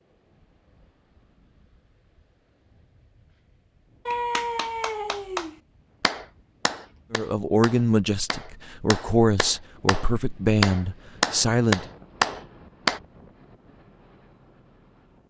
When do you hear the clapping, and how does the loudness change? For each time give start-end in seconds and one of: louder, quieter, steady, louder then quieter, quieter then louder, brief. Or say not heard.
4.0-13.0 quieter then louder.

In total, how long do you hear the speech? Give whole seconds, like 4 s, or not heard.
5 s.